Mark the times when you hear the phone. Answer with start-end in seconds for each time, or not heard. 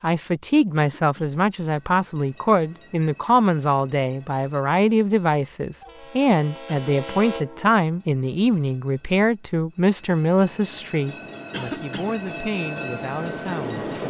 not heard.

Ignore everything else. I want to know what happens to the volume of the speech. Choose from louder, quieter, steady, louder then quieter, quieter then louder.
quieter.